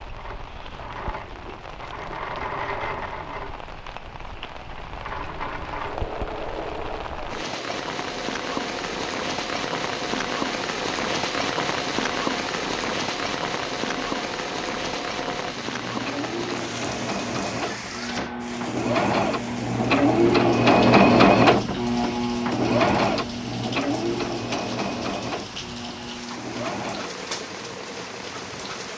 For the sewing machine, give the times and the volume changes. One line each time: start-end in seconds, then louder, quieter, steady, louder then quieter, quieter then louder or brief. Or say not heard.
0.0-28.9 louder then quieter.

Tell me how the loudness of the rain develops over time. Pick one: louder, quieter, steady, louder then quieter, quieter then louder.
louder then quieter.